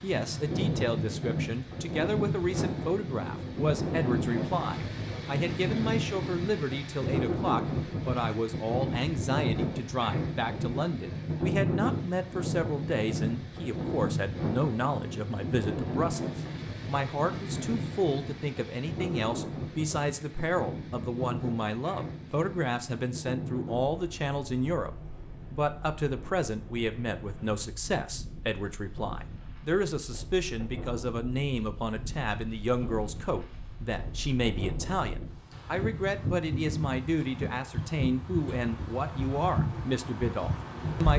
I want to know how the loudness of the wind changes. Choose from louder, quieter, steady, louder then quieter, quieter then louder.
quieter then louder.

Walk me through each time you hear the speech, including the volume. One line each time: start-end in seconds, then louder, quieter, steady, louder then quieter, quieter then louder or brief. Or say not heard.
0.0-41.1 steady.